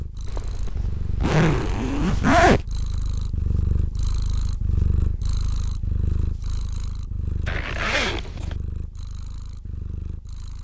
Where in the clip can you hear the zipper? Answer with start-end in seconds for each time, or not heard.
0.2-2.6, 7.5-8.6.